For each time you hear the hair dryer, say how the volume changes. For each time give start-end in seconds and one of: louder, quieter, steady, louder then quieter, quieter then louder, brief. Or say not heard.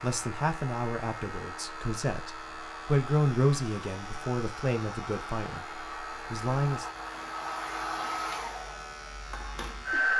0.0-10.1 louder.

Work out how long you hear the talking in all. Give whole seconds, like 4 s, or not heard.
7 s.